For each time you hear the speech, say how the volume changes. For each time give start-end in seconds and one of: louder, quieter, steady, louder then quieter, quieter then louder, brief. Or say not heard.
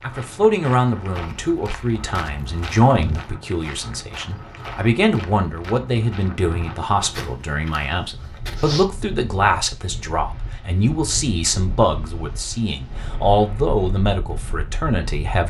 0.0-15.4 steady.